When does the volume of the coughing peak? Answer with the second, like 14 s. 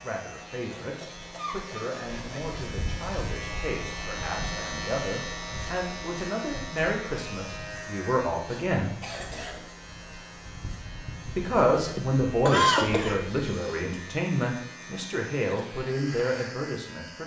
13 s.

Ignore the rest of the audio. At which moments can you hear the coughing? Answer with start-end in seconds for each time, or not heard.
0.7-2.5, 9.0-9.7, 11.9-13.8.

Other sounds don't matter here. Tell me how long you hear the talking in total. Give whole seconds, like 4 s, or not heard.
15 s.